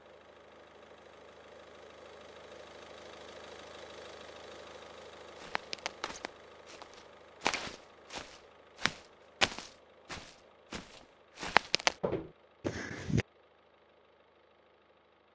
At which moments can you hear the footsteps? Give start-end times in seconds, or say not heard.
5.3-13.2.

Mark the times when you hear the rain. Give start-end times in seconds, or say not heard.
not heard.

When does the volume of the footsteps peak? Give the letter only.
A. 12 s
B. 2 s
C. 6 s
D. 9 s
A.